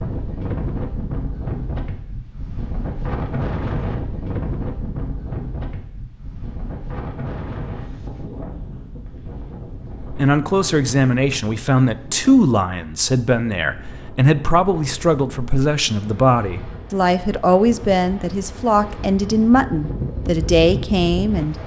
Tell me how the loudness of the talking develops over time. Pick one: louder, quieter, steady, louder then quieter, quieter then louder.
steady.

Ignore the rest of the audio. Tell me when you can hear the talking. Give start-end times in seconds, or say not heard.
10.1-21.6.